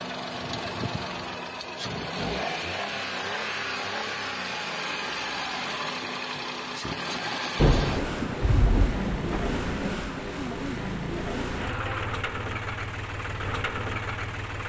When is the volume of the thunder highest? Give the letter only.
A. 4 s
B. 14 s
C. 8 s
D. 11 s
C.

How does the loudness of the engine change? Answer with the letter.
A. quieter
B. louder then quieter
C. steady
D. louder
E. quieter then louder
C.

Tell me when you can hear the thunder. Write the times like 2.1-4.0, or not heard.
7.5-10.1.